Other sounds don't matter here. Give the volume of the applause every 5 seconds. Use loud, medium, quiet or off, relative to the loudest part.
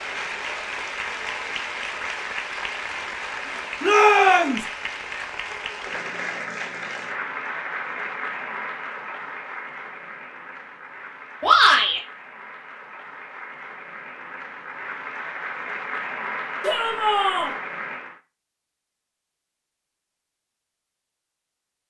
loud, loud, medium, loud, off.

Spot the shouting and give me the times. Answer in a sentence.
You can hear the shouting from 3.8 to 4.7 s, from 11.4 to 12.0 s and from 16.6 to 17.6 s.